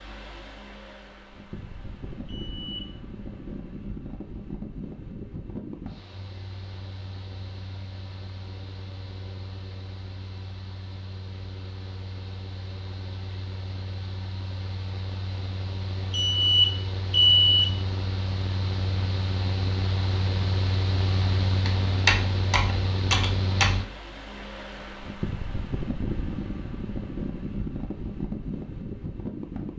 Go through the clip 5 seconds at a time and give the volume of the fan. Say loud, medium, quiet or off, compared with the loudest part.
medium, medium, medium, loud, loud, loud.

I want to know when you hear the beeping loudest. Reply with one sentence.
The loudest moment of the beeping is at 17 seconds.